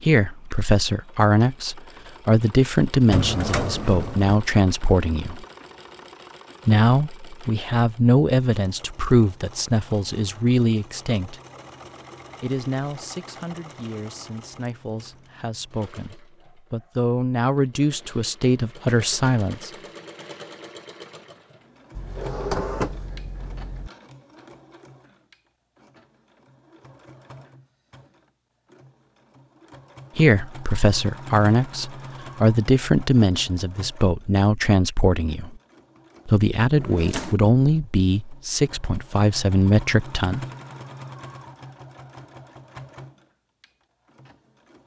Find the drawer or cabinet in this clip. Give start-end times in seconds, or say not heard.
3.1-4.4, 21.9-23.9, 36.8-37.4.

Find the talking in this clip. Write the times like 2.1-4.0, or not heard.
0.0-5.5, 6.7-11.4, 12.4-19.7, 30.1-35.5, 36.2-40.5.